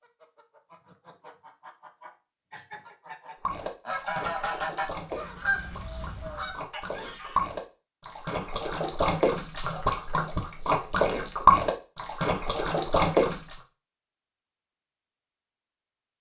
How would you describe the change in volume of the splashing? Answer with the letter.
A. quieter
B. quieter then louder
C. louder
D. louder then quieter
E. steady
C.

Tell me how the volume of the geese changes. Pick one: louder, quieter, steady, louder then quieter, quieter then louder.
louder then quieter.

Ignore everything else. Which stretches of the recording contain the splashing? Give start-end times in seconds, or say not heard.
3.4-13.6.